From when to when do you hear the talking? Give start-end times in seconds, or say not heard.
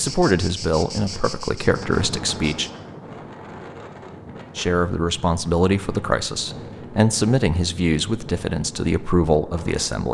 0.0-2.7, 4.5-10.0.